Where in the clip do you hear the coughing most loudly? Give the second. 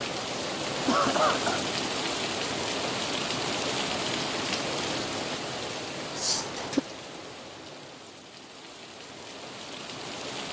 1 s.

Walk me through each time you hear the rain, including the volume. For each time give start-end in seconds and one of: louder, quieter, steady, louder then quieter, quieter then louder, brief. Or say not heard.
0.0-10.4 quieter.